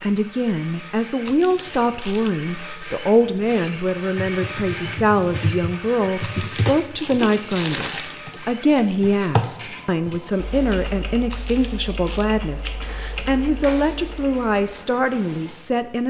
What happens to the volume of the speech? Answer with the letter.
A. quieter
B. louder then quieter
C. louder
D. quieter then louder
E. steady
E.